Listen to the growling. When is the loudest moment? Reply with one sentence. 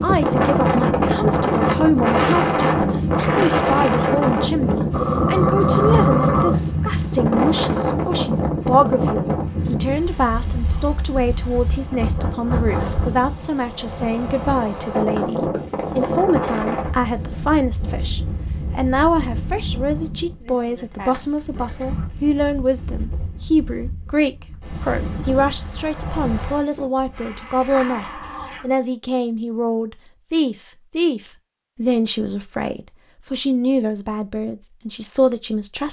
The volume of the growling peaks at 6 seconds.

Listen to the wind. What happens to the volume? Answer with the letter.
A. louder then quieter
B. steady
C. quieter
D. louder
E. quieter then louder
C.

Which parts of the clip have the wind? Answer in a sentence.
The wind can be heard from 0.0 to 26.9 s.